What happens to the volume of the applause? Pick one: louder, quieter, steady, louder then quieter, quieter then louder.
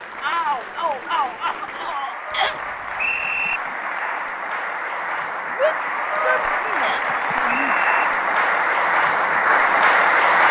louder.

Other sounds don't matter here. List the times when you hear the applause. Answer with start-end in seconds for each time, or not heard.
0.0-10.4.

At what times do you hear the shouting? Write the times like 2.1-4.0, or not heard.
0.2-2.2, 5.5-7.8.